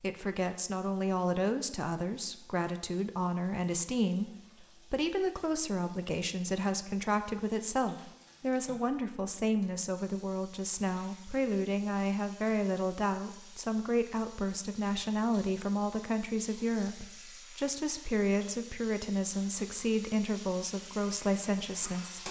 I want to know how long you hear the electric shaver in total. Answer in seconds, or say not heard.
not heard.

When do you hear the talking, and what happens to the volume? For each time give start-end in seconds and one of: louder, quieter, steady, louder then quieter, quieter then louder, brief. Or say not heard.
0.0-22.2 steady.